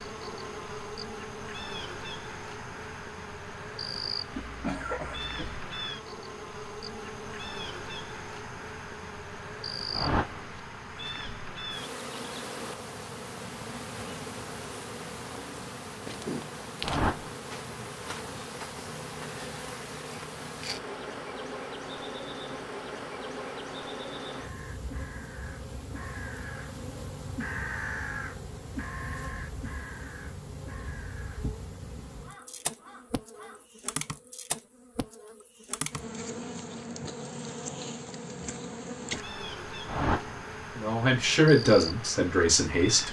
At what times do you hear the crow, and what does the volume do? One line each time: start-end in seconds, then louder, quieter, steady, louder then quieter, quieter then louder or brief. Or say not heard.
24.4-26.7 brief
27.4-31.4 quieter
32.2-33.6 brief.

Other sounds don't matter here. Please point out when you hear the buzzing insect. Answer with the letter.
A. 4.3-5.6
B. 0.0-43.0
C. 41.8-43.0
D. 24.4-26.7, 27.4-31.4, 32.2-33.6
B.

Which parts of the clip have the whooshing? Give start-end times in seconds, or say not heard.
9.9-10.4, 16.8-17.4, 39.9-40.4.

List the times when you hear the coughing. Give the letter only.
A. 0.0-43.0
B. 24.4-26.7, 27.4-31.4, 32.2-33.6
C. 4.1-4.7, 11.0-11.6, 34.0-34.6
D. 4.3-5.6
D.